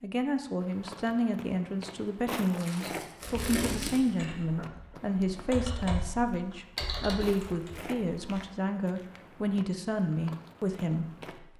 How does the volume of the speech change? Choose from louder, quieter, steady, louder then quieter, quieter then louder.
steady.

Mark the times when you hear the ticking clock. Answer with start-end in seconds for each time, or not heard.
not heard.